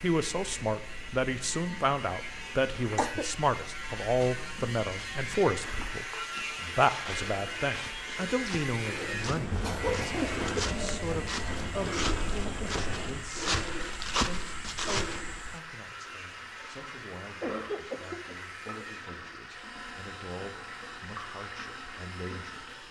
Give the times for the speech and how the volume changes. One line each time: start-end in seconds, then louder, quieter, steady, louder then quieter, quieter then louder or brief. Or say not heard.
0.0-22.8 quieter.